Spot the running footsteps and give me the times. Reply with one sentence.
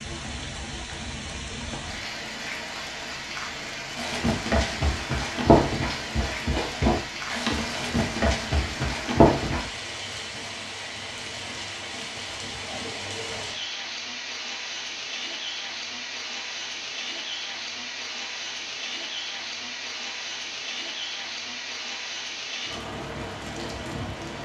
You can hear the running footsteps from 4.0 to 9.7 s.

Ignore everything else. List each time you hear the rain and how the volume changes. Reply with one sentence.
The rain can be heard from 0.0 to 24.3 s, at a steady volume.